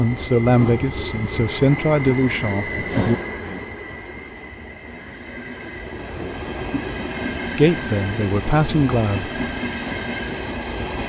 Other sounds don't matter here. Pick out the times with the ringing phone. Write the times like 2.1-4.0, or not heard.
not heard.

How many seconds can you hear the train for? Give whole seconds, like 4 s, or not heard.
11 s.